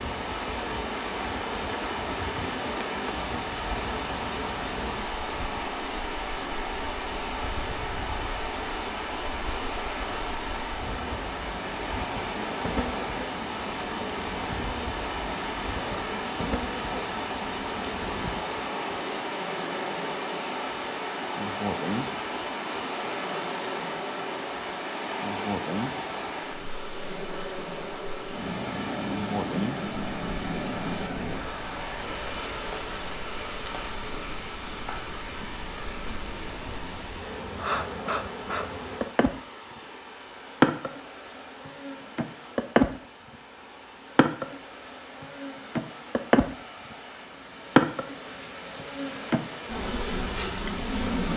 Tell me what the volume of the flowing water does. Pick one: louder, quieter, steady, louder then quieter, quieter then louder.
quieter.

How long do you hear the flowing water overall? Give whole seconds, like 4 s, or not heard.
51 s.